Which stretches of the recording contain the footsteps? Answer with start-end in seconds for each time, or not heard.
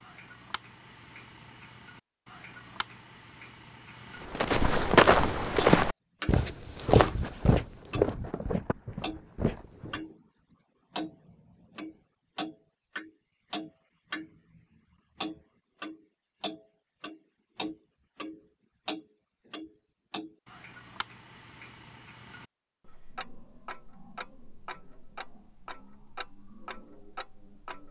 4.3-10.0.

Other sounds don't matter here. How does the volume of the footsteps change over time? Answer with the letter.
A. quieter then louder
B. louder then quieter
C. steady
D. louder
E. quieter
E.